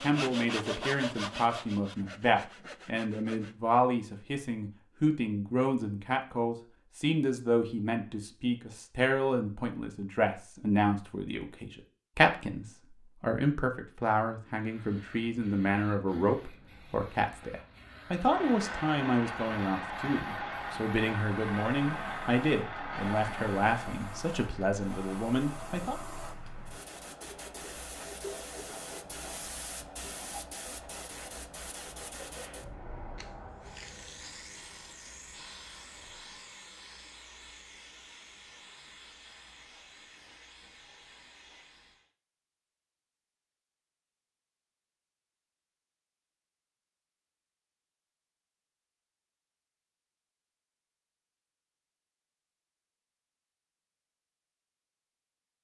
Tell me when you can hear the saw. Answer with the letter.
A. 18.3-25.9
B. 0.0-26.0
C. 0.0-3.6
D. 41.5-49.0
C.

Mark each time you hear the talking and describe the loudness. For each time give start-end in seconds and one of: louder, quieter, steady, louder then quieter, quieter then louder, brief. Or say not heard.
0.0-26.0 steady.